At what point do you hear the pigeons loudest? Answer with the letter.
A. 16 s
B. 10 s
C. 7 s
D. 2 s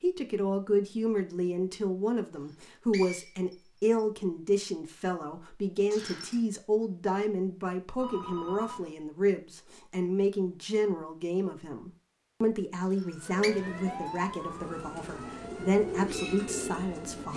A.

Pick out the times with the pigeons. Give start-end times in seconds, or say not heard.
13.8-17.3.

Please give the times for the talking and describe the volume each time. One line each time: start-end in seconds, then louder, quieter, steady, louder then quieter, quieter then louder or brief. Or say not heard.
0.0-17.3 steady.